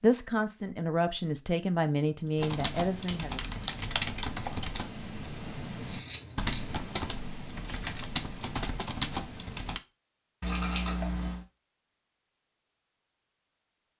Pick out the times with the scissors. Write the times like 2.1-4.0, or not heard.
2.5-3.1, 5.4-6.8, 10.4-11.4.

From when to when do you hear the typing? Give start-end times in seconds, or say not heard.
2.4-9.8.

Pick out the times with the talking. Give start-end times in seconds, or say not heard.
0.0-3.5.